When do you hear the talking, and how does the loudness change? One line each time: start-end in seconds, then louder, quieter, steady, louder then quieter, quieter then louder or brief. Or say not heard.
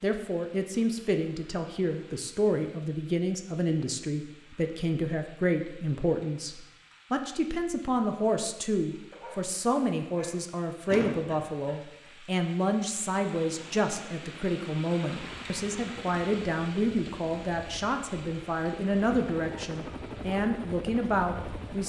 0.0-21.8 steady.